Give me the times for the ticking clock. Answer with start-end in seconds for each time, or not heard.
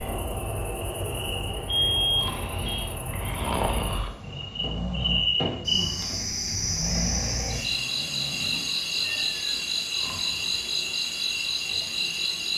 not heard.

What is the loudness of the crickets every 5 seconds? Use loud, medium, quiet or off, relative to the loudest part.
medium, loud, loud.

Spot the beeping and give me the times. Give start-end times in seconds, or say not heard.
1.6-2.8.